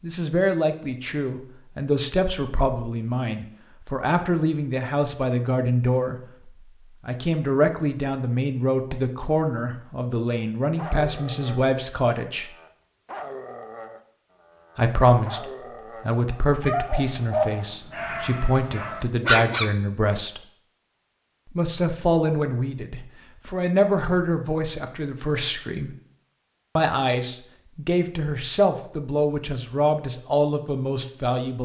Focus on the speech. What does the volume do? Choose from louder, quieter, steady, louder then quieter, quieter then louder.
steady.